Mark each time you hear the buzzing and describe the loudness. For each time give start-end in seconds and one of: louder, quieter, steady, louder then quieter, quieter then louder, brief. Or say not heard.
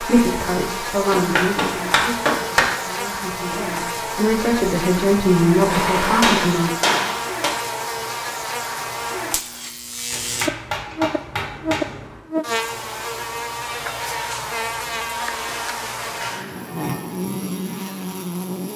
0.0-18.7 steady.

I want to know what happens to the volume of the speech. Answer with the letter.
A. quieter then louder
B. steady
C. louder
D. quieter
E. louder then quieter
A.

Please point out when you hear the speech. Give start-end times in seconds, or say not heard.
0.0-6.7.